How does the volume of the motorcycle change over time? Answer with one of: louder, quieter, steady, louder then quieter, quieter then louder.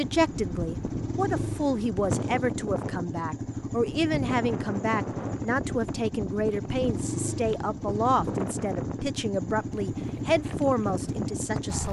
steady.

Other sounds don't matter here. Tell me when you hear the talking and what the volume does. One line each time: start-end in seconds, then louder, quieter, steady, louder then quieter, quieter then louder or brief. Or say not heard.
0.0-11.8 steady.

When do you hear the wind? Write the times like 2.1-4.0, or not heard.
0.0-11.8.